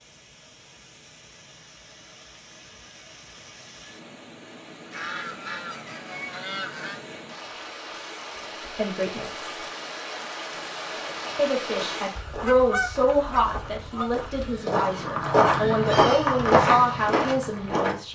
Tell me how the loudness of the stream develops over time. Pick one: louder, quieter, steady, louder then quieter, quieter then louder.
louder.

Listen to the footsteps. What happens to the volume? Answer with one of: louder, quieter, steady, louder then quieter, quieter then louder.
louder.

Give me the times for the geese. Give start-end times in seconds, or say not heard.
4.9-7.0, 12.2-14.7.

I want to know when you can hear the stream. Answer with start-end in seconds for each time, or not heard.
0.0-12.2.